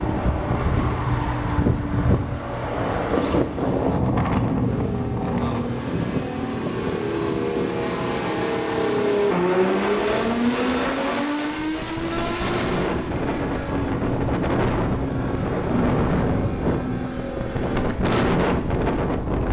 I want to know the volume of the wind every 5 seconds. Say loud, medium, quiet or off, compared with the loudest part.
loud, medium, loud, loud.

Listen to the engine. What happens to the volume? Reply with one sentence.
The loudness of the engine goes up, then down.